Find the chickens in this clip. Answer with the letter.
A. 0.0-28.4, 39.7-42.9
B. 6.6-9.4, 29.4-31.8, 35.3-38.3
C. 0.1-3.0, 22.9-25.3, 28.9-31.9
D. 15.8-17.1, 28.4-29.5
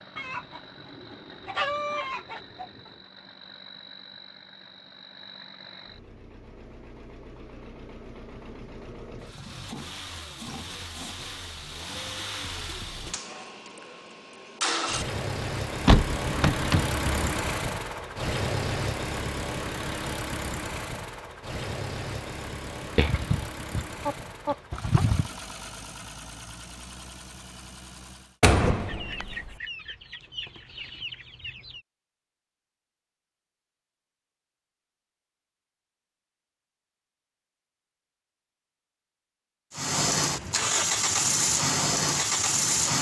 C.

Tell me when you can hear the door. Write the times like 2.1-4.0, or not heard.
15.8-17.1, 28.4-29.5.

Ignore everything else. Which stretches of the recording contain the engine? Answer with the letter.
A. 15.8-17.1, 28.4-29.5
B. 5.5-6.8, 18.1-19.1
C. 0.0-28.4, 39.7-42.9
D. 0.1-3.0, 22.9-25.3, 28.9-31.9
C.